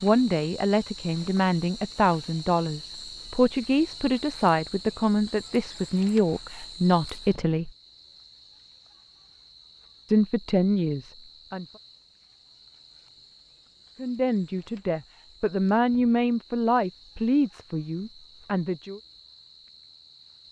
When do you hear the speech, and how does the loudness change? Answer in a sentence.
You can hear the speech from 0.0 to 7.7 s, at a steady volume; briefly from 10.1 to 11.7 s; and from 14.0 to 19.0 s, getting louder then quieter.